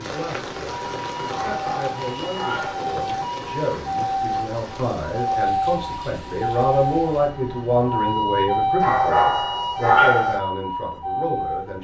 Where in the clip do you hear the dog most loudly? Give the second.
10 s.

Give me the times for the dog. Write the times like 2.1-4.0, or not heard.
1.4-2.9, 8.8-10.4.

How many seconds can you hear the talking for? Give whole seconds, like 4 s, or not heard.
12 s.